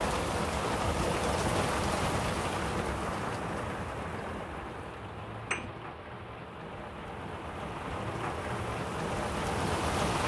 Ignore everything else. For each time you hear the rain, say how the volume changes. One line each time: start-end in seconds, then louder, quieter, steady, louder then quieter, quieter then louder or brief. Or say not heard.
0.0-10.2 quieter then louder.